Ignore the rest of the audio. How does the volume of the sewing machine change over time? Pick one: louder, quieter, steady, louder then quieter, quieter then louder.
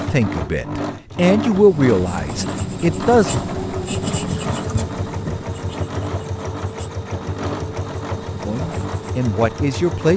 steady.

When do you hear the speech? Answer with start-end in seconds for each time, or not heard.
0.1-3.4, 8.4-10.1.